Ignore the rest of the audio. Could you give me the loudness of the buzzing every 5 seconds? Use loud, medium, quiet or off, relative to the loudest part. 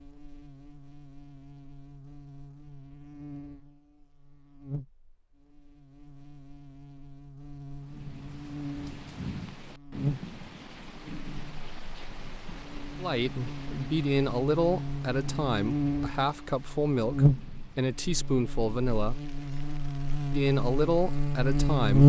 quiet, quiet, quiet, medium, loud.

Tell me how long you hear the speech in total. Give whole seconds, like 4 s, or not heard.
8 s.